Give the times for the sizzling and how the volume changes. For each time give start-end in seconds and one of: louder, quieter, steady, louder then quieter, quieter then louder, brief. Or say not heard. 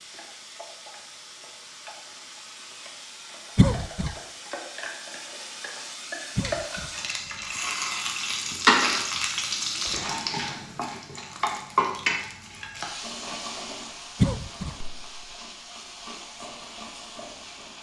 0.0-17.7 louder then quieter.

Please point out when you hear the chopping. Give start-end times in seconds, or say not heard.
not heard.